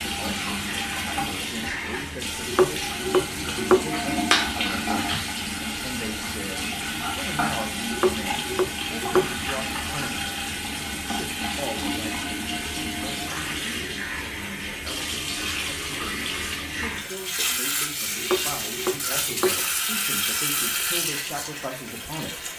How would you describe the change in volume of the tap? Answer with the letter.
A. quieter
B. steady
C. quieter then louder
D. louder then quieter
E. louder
B.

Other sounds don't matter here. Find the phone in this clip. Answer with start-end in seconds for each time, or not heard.
not heard.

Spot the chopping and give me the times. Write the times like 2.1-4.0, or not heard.
2.5-3.9, 7.9-9.3, 18.2-19.6.